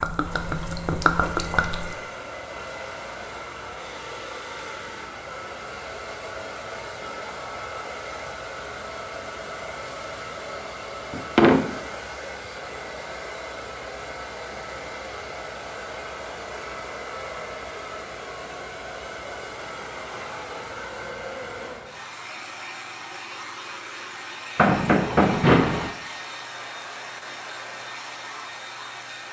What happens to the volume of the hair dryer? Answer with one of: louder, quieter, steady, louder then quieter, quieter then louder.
steady.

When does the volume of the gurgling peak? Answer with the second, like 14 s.
1 s.